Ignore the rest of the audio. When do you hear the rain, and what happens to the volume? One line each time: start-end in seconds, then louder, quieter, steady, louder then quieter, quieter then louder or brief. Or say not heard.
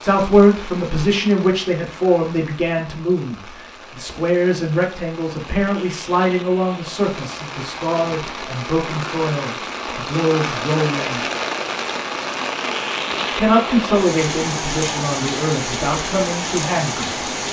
0.0-17.4 louder.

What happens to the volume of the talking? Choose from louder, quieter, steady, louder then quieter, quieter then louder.
quieter.